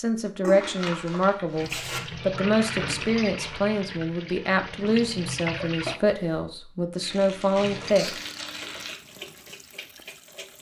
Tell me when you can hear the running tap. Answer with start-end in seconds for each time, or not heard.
1.6-6.0, 7.5-10.5.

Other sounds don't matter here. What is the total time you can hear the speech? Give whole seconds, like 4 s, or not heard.
8 s.